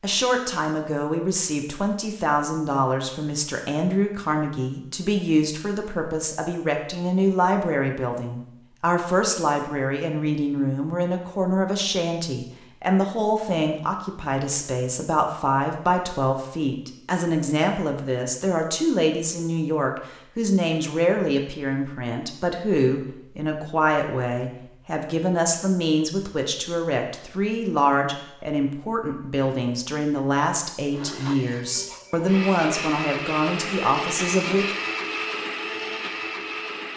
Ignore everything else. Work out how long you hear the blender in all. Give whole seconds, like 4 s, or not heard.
6 s.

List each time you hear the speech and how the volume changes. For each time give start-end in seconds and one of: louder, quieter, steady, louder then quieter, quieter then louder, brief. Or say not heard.
0.0-34.8 steady.